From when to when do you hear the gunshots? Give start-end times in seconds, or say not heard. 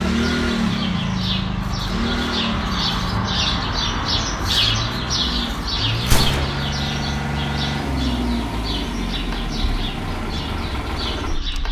6.0-6.7.